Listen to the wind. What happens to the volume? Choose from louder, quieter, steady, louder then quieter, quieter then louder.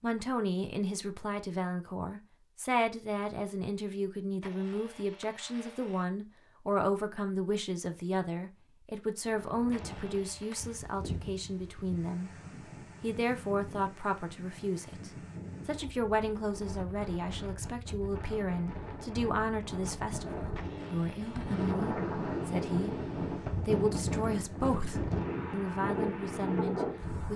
louder.